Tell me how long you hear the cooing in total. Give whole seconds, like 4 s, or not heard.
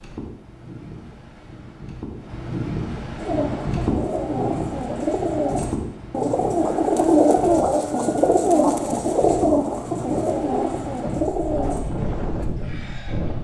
9 s.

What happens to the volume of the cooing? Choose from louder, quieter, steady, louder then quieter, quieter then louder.
louder then quieter.